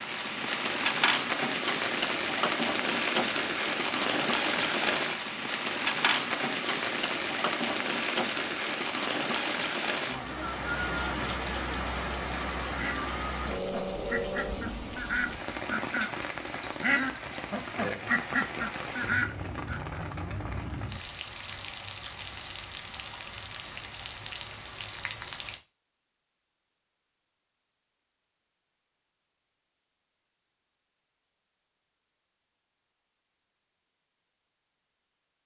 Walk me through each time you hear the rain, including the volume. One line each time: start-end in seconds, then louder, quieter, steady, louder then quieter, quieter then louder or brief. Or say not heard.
0.0-25.6 quieter.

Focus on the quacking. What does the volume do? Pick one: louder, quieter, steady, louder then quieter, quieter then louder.
louder.